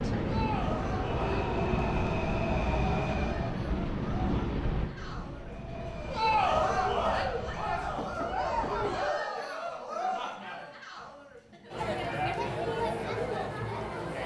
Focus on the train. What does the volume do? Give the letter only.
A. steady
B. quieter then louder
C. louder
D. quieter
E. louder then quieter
D.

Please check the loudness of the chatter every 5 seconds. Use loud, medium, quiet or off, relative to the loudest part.
medium, loud, loud.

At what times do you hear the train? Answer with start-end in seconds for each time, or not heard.
0.0-9.1.